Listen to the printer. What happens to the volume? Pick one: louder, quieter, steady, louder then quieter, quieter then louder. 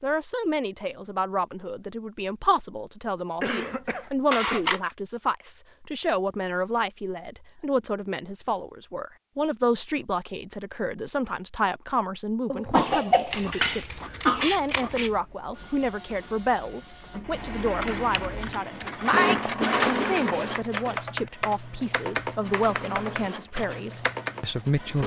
louder then quieter.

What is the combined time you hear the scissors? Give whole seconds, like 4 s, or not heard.
4 s.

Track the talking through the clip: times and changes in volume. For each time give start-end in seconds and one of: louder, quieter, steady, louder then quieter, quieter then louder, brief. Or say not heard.
0.0-25.0 steady.